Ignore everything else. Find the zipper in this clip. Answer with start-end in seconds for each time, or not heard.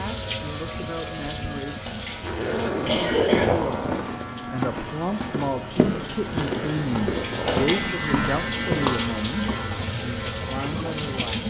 2.2-4.0, 6.2-7.7.